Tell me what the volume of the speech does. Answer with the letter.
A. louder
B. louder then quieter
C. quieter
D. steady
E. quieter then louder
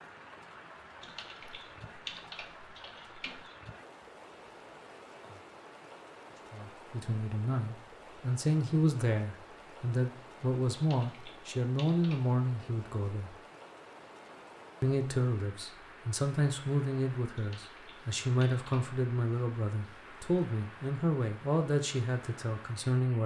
D.